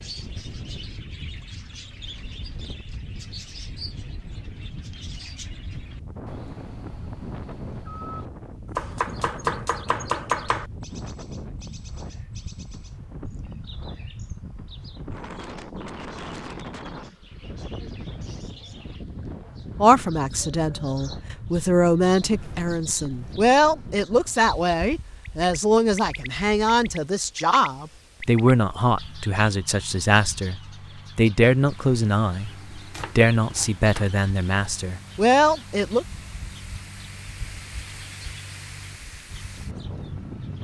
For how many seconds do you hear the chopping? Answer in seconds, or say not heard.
3 s.